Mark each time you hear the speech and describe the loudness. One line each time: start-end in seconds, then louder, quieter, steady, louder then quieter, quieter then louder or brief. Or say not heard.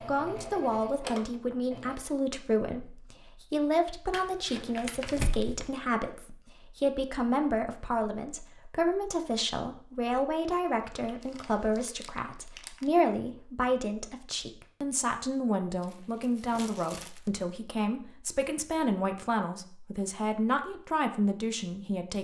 0.0-22.2 steady.